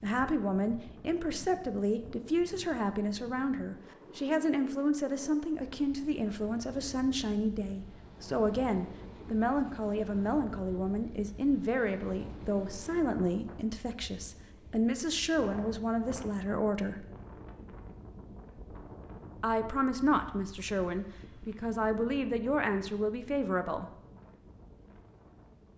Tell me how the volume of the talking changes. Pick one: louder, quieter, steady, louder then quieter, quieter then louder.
steady.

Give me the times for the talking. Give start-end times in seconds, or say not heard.
0.0-17.1, 19.4-23.9.